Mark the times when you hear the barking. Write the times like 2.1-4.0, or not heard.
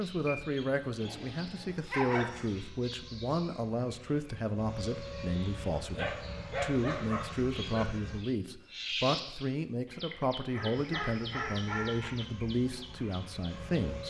1.0-2.5, 5.8-7.8, 10.5-12.1.